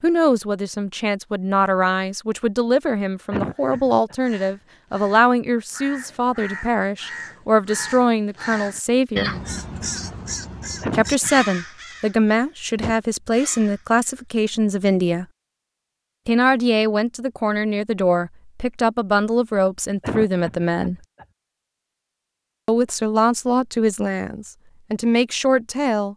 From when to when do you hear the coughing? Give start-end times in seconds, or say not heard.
3.3-4.2, 10.8-11.4, 20.0-21.2.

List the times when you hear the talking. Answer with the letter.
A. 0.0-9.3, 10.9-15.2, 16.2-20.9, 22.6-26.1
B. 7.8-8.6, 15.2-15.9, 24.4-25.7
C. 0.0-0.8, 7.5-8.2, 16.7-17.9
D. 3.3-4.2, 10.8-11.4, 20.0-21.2
A.